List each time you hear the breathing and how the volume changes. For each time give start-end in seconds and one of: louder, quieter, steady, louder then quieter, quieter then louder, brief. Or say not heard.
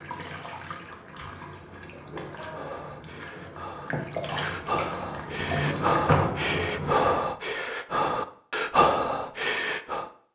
2.4-10.1 louder.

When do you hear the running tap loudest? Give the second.
6 s.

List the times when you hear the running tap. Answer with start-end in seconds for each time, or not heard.
0.0-7.0.